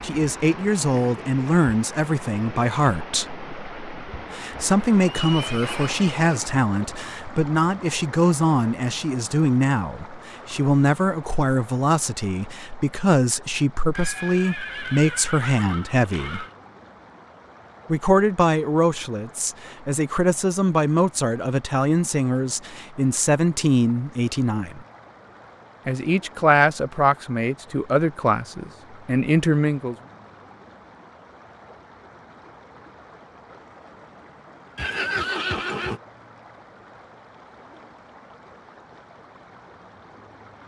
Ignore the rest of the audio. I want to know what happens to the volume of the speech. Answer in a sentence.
The loudness of the speech stays about the same.